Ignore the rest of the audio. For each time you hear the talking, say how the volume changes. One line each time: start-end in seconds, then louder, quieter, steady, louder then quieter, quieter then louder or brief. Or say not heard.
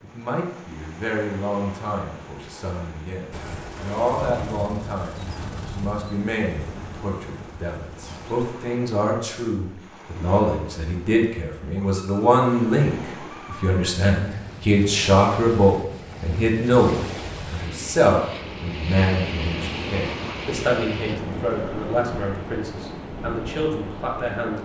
0.0-24.6 louder then quieter.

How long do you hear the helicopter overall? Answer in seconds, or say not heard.
5 s.